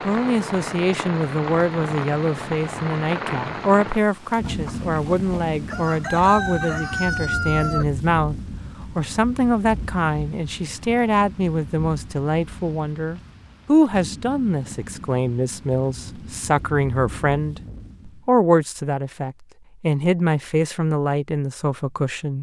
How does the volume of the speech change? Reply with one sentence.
The loudness of the speech stays about the same.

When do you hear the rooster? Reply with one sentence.
The rooster can be heard from 4.4 to 7.8 s.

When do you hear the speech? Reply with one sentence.
The speech can be heard from 0.0 to 8.3 s and from 8.9 to 22.3 s.